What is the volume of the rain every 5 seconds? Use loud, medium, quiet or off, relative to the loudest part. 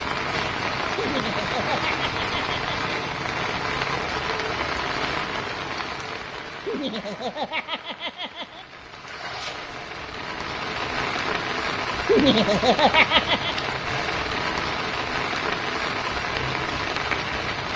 loud, medium, loud, loud.